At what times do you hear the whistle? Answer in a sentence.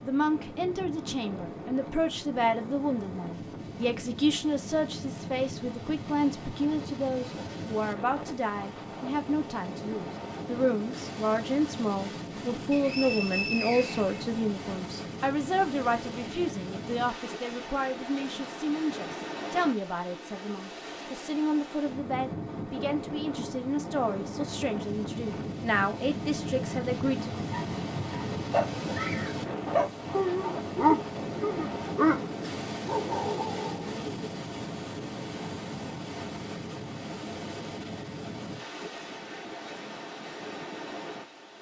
You can hear the whistle from 12.7 to 14.2 s.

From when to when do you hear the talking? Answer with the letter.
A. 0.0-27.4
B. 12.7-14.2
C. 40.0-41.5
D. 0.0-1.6
A.